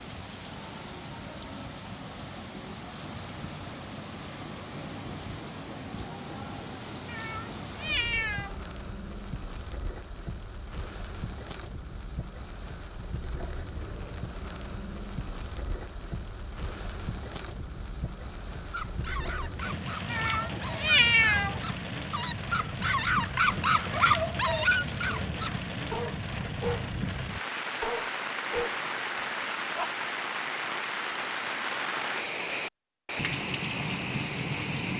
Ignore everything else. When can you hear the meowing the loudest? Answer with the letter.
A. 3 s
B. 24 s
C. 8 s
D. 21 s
D.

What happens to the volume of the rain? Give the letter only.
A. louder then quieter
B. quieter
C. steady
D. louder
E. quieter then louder
D.